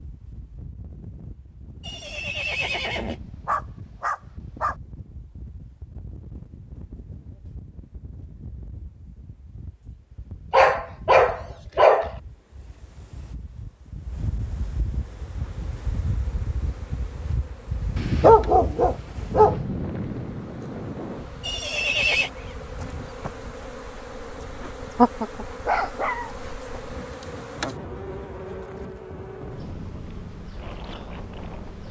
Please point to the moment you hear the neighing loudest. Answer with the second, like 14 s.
22 s.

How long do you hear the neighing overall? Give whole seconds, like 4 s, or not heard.
2 s.